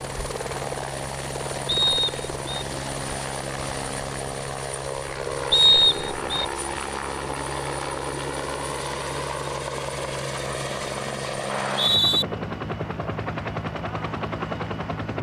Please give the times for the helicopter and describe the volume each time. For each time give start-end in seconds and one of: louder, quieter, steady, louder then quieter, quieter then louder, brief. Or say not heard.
0.0-15.1 steady.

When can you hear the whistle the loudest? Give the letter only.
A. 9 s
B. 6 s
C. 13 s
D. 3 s
B.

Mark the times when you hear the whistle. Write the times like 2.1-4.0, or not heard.
1.6-2.6, 5.5-6.5, 11.5-12.2.